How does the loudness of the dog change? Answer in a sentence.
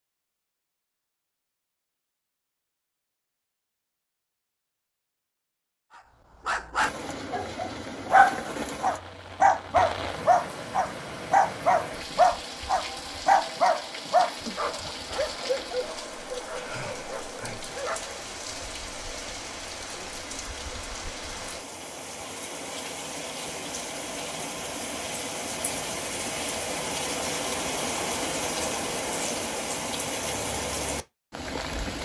The loudness of the dog goes down.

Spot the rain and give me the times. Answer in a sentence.
The rain can be heard from 6.8 to 32.0 s.